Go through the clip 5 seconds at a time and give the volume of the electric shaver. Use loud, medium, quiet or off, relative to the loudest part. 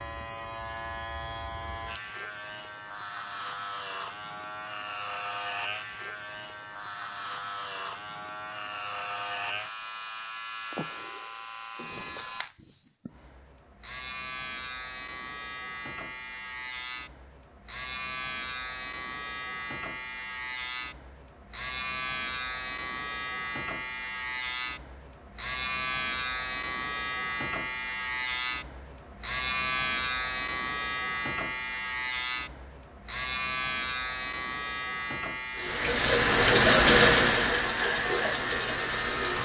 medium, medium, medium, medium, loud, loud, loud, loud.